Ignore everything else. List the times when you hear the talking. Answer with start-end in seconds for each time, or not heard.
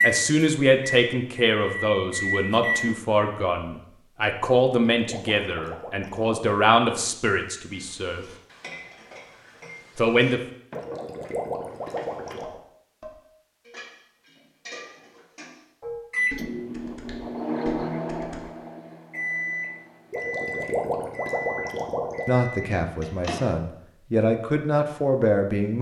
0.0-8.2, 9.9-10.4, 22.2-25.7.